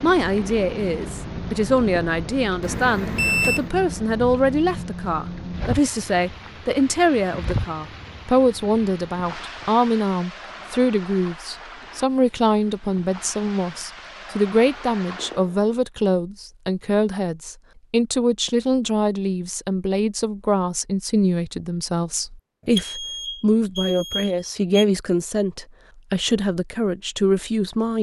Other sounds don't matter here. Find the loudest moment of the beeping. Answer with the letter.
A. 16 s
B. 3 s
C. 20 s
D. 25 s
B.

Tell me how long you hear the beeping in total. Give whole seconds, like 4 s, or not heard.
4 s.